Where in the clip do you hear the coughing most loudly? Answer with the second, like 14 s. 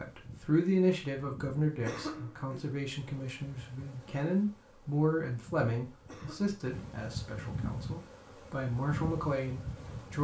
2 s.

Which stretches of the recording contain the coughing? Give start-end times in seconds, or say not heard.
1.8-2.7, 6.0-6.6.